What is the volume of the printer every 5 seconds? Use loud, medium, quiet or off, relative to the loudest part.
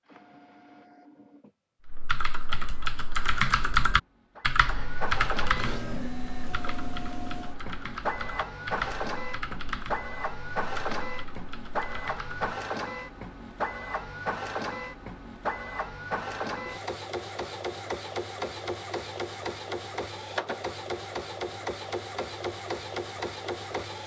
quiet, loud, loud, loud, loud.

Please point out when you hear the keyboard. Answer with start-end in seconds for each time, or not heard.
1.9-12.4.